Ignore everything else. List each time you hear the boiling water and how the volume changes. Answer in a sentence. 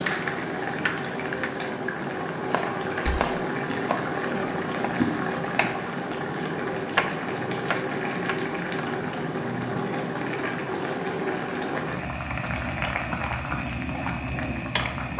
You can hear the boiling water from 0.0 to 15.1 s, at a steady volume.